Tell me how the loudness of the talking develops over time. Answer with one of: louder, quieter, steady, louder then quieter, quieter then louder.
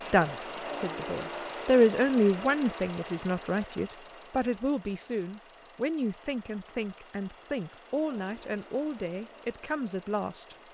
quieter.